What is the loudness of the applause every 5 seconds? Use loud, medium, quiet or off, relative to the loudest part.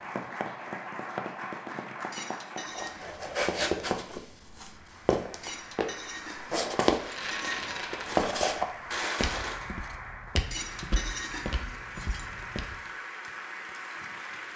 loud, medium, loud.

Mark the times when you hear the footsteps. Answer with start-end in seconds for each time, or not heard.
2.8-12.8.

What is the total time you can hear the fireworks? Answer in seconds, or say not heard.
3 s.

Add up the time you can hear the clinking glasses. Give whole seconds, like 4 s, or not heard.
5 s.